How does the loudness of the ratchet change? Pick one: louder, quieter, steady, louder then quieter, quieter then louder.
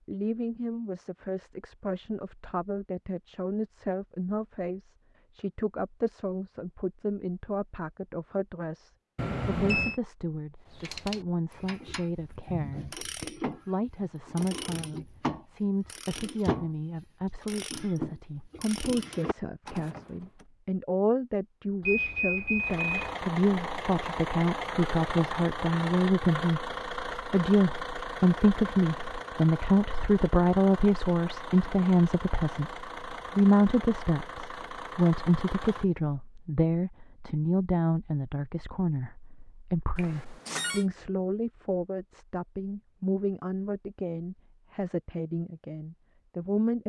louder then quieter.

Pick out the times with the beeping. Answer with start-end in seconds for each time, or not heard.
9.2-9.9, 21.8-23.1, 40.0-40.9.